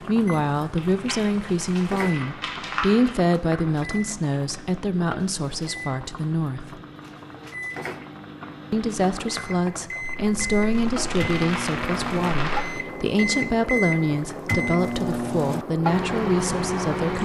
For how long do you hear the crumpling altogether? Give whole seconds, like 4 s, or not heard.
5 s.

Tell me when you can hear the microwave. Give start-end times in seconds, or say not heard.
0.0-17.2.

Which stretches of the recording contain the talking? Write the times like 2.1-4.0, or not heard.
0.0-6.8, 8.7-17.2.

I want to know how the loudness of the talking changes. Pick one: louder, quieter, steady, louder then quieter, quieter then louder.
steady.